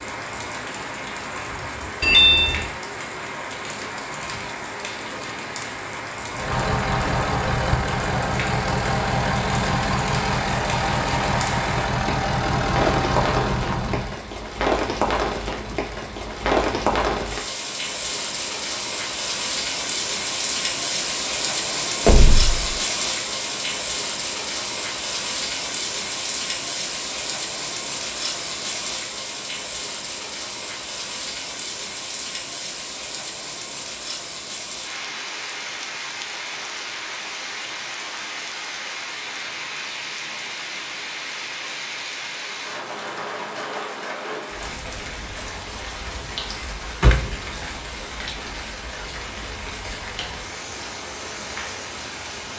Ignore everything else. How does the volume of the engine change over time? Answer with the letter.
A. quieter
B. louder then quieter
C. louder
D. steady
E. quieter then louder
D.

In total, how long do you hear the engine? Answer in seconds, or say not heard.
8 s.